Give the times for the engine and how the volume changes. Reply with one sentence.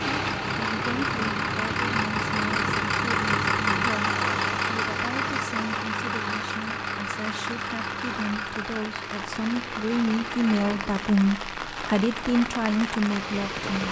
The engine can be heard from 0.0 to 13.8 s, getting quieter.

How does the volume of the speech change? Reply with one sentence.
The loudness of the speech goes up.